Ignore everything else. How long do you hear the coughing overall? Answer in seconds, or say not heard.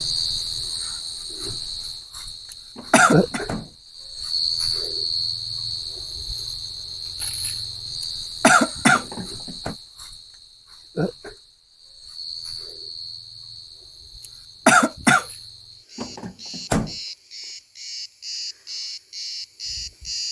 3 s.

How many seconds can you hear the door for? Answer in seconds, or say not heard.
3 s.